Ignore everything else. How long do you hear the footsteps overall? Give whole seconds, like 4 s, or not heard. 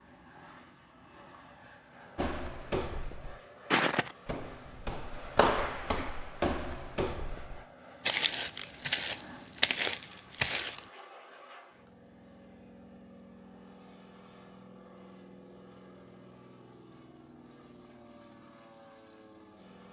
9 s.